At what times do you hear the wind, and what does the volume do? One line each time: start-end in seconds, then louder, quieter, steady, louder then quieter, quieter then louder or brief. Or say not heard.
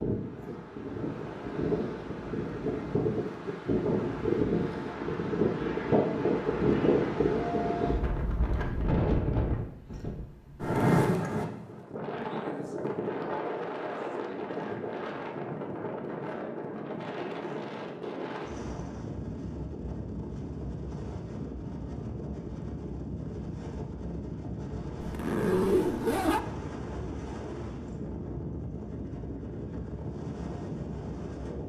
0.0-31.6 quieter.